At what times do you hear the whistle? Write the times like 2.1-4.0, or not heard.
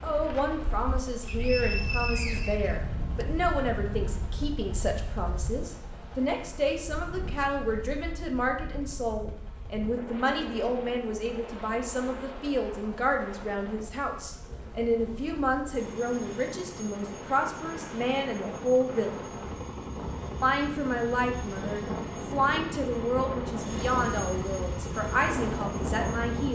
1.2-3.2.